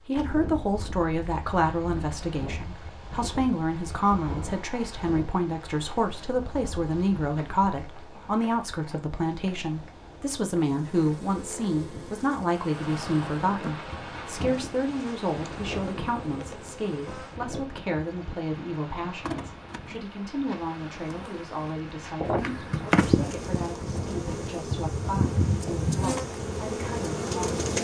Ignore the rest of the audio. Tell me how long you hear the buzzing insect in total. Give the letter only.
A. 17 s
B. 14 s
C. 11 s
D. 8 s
A.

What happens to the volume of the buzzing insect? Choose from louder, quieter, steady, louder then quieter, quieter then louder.
louder.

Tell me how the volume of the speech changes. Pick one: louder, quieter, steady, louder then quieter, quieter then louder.
quieter.